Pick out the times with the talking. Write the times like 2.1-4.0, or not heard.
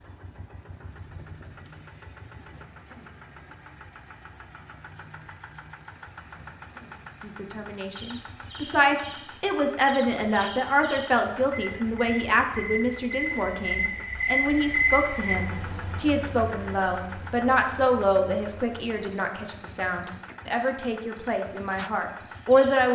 7.2-22.8.